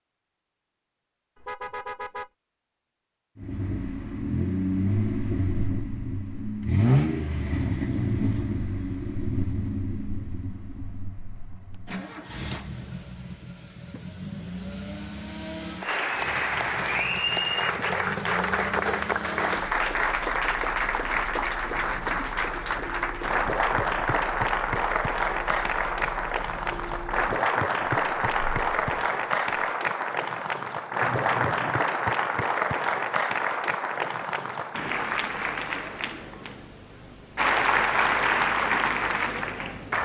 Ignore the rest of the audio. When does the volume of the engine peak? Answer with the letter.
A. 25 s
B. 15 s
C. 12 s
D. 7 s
D.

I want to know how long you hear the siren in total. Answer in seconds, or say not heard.
not heard.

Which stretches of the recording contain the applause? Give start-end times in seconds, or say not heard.
15.8-39.9.